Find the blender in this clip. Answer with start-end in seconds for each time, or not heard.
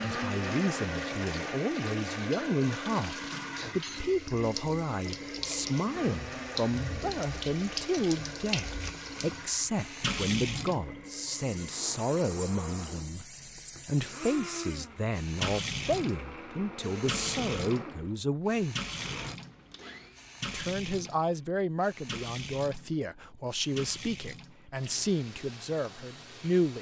0.0-20.1.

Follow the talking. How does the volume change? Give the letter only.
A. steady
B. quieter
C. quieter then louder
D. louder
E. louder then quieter
A.